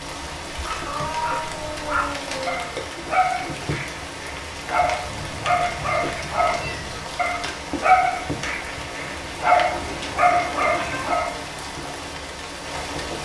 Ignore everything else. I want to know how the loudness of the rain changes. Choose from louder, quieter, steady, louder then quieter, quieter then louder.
steady.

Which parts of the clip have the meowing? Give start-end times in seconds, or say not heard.
0.8-2.8, 5.0-7.0, 9.7-11.1.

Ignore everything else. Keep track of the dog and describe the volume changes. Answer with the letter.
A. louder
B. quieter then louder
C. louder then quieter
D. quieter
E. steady
A.